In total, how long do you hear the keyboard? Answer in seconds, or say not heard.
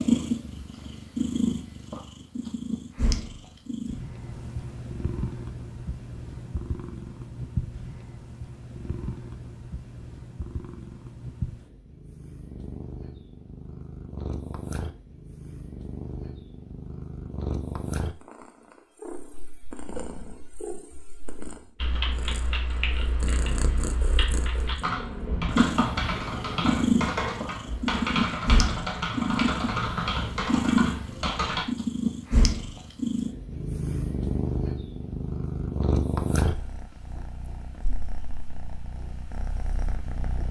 10 s.